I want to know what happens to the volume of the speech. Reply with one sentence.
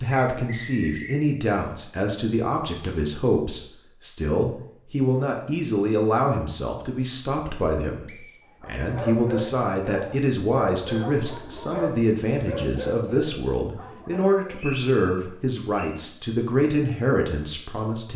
The volume of the speech stays about the same.